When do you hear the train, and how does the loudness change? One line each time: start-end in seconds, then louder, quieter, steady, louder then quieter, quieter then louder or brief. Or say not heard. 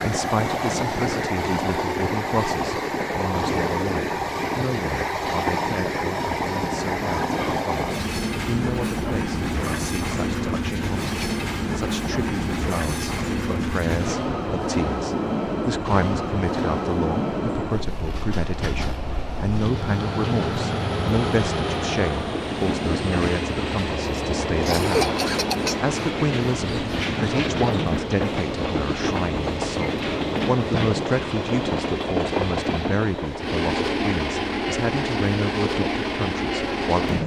0.0-37.2 steady.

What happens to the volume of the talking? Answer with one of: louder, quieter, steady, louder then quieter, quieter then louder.
steady.